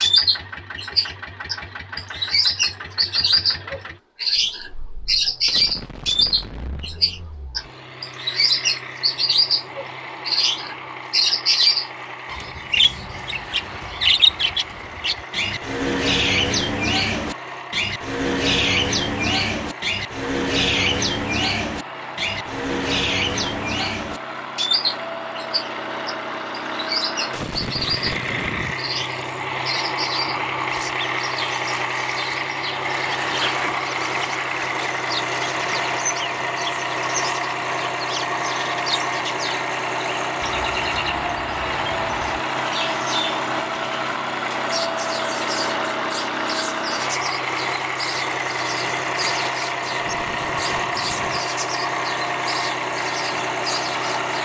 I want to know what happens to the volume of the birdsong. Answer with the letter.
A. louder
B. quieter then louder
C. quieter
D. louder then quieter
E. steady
C.